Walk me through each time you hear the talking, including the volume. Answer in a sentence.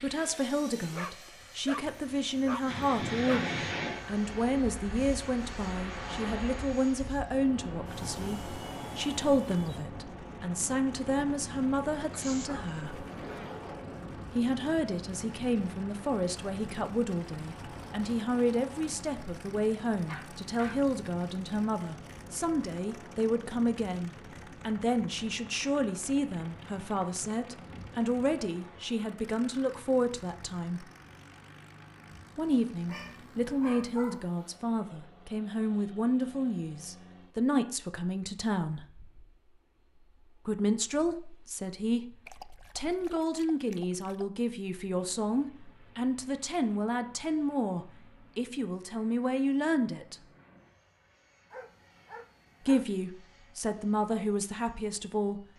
You can hear the talking from 0.0 to 13.1 s, at a steady volume; from 14.3 to 30.9 s, at a steady volume; from 32.4 to 38.9 s, at a steady volume; from 40.5 to 50.1 s, at a steady volume; and briefly from 52.6 to 55.4 s.